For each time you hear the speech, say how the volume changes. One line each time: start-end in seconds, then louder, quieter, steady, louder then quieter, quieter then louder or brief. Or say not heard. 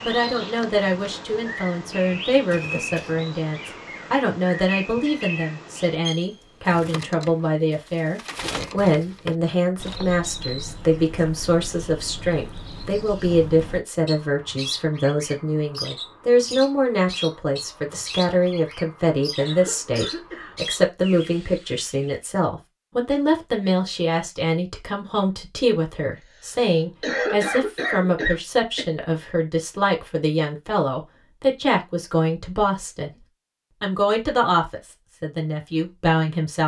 0.1-36.6 steady.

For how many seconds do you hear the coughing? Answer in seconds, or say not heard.
4 s.